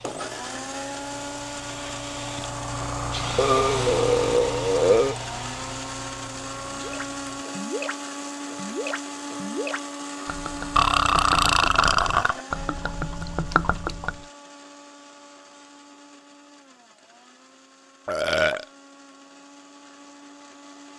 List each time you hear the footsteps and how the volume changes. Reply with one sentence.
The footsteps can't be heard in this clip.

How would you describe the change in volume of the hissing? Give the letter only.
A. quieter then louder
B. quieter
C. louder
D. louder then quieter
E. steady
D.